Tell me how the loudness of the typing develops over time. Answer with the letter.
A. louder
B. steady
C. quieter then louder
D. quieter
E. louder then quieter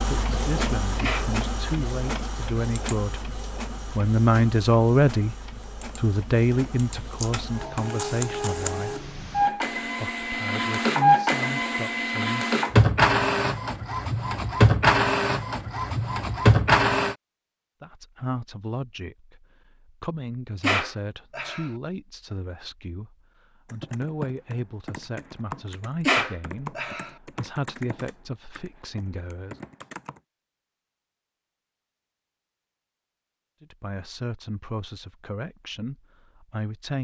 D.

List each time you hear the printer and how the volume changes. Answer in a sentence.
You can hear the printer from 0.0 to 17.1 s, getting quieter then louder.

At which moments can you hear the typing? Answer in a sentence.
The typing can be heard from 23.6 to 30.2 s.